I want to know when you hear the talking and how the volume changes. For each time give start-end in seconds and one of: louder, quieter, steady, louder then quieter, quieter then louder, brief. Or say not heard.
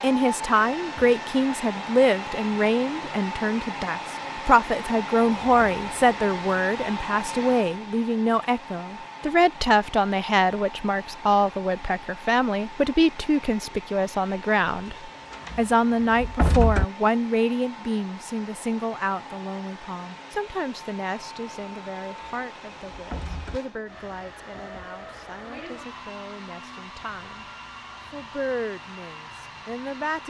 0.0-14.9 steady
15.6-27.4 quieter
28.1-30.2 brief.